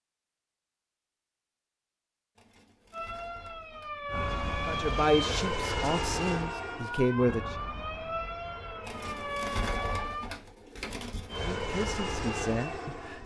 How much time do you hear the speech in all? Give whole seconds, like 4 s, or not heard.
5 s.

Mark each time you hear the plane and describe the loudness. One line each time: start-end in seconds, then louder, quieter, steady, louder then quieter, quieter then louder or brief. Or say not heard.
4.0-9.4 quieter
11.2-13.2 brief.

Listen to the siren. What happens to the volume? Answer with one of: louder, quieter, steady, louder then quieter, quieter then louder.
steady.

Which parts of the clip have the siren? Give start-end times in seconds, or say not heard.
2.9-10.3.